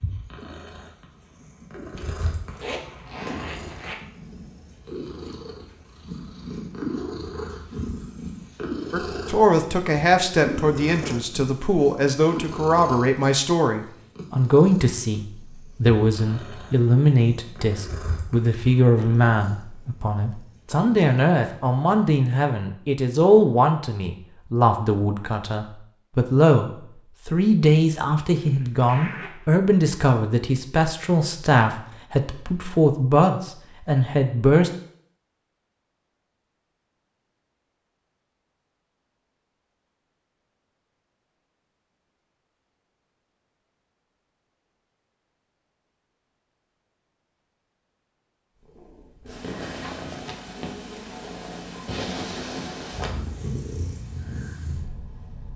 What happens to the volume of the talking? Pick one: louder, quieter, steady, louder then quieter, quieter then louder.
steady.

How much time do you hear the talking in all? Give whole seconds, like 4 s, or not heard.
26 s.